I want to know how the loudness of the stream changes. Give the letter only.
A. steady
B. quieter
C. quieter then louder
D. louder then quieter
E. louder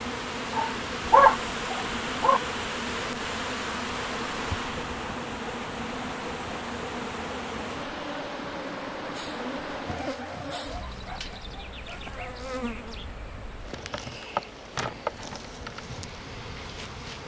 B.